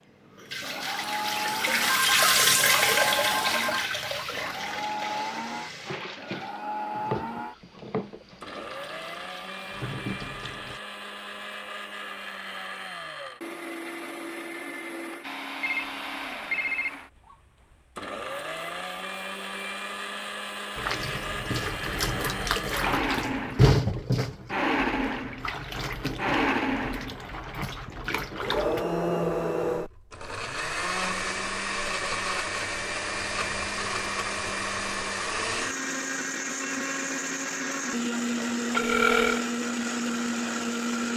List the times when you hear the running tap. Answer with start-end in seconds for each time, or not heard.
0.2-10.8, 20.8-28.9.